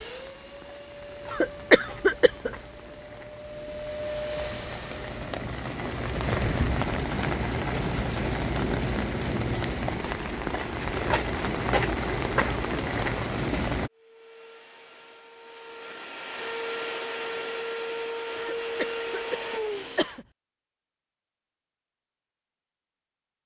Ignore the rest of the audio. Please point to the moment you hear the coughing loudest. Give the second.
2 s.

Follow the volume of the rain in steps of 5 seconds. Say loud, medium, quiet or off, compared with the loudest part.
quiet, loud, loud, off, off.